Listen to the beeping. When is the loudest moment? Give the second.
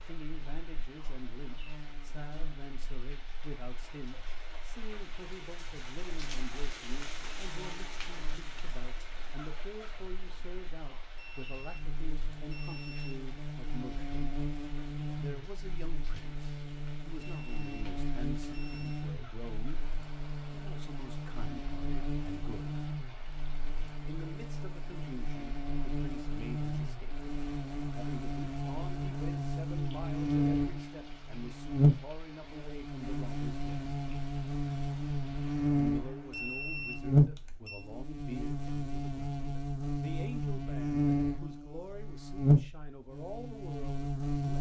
37 s.